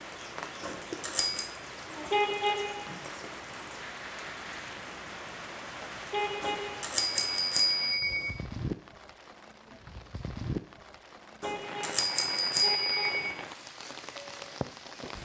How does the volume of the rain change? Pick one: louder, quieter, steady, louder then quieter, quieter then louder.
steady.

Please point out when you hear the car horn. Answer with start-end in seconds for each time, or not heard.
2.1-3.0, 6.1-7.0, 11.4-13.3.